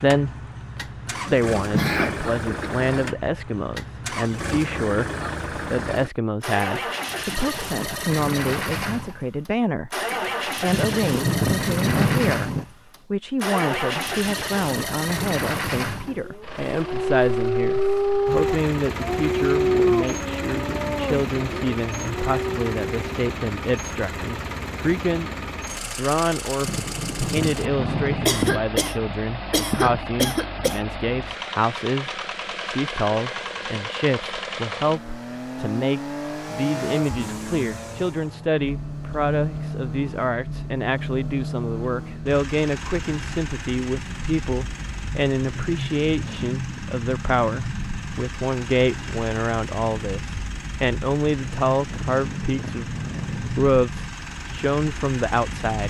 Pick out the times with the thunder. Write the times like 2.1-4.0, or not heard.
10.7-12.7, 26.6-28.6, 51.9-53.6.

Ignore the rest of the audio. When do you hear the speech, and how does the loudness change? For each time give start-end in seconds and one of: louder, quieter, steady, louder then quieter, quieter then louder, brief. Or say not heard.
0.0-0.5 brief
1.2-55.8 steady.